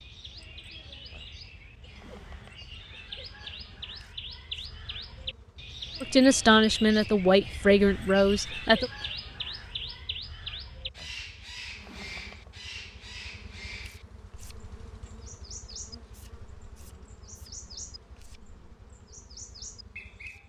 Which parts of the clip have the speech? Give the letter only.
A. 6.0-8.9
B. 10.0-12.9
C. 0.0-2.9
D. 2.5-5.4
A.